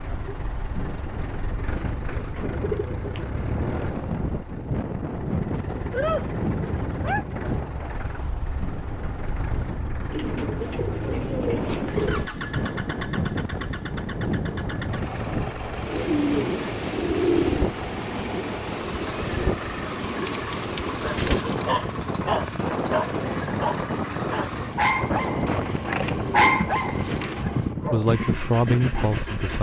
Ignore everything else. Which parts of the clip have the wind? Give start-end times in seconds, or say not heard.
0.0-29.5.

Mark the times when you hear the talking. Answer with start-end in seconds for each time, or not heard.
27.9-29.5.